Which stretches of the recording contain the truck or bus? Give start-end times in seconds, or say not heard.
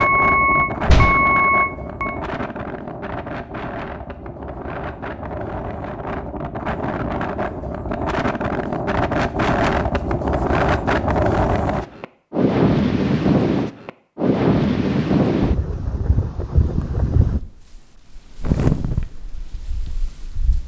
0.0-2.1.